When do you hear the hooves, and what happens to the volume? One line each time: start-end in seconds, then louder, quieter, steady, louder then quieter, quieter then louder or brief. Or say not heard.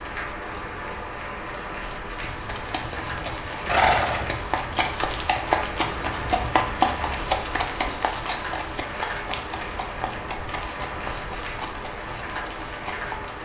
2.2-13.2 quieter.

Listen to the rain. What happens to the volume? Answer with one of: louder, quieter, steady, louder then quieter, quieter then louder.
steady.